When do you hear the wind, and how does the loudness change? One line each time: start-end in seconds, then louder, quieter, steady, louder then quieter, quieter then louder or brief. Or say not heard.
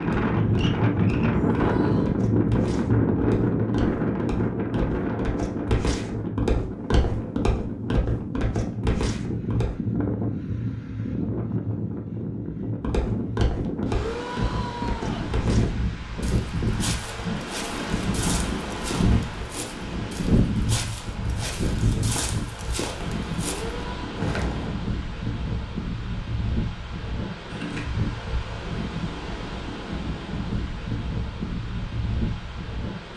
0.0-33.1 quieter.